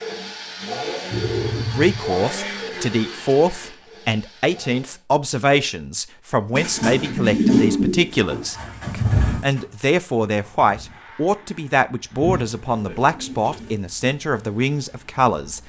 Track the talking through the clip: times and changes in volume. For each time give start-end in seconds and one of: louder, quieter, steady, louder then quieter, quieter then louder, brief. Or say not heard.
1.8-15.6 steady.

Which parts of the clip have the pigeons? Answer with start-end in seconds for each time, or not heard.
1.1-2.1, 6.5-8.4, 12.2-13.8.